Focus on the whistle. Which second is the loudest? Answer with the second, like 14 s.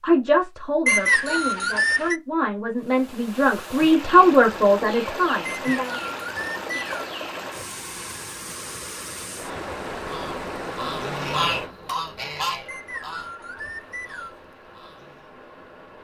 1 s.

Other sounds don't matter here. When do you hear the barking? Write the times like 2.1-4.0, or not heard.
not heard.